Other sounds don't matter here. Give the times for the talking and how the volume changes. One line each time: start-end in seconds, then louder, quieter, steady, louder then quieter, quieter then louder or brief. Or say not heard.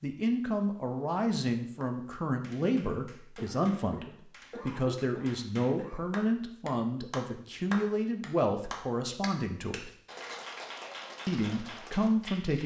0.0-9.9 steady
11.2-12.6 brief.